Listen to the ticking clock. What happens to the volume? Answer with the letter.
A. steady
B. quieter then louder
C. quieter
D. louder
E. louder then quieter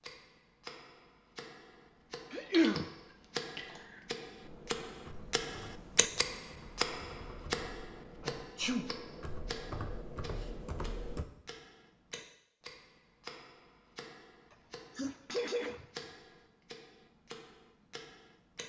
E.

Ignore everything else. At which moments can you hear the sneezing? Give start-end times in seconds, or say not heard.
2.3-2.9, 8.2-8.9, 14.5-16.1.